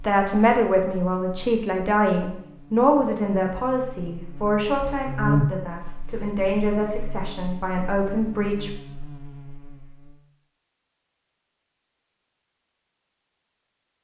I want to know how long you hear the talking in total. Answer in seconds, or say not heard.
9 s.